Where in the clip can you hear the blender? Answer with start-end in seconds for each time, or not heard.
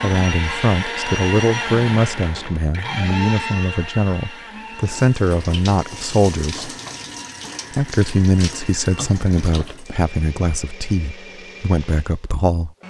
0.0-12.8.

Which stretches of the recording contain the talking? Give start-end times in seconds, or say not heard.
0.0-6.7, 7.7-12.7.